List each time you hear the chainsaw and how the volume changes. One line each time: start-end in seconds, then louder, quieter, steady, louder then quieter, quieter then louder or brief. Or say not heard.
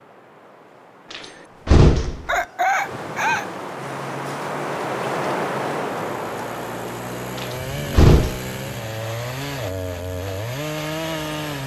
3.8-11.6 louder.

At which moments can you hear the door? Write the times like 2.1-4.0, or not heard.
1.1-2.3, 7.3-8.4.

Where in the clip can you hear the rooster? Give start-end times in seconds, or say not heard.
2.2-3.5.